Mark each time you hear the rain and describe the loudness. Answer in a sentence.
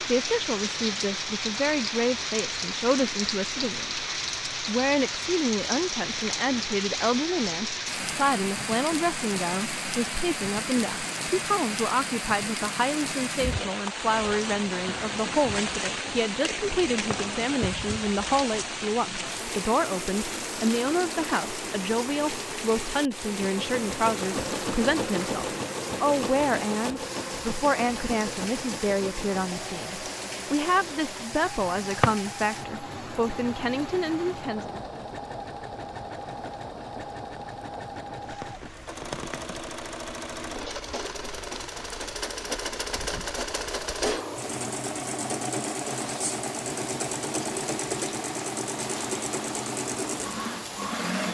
The rain can be heard from 0.0 to 51.3 s, getting quieter.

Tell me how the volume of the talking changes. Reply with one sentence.
The loudness of the talking stays about the same.